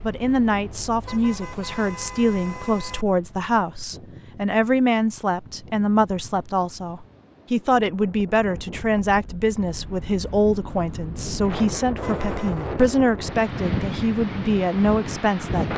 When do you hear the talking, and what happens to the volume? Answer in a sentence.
You can hear the talking from 0.0 to 15.7 s, at a steady volume.